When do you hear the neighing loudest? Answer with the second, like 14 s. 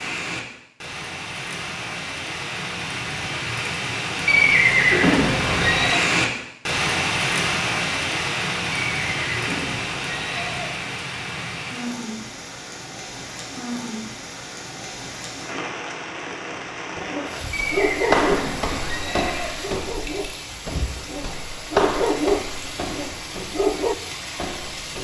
5 s.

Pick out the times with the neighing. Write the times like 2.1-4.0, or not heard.
4.2-6.0, 8.8-10.7, 17.5-19.6.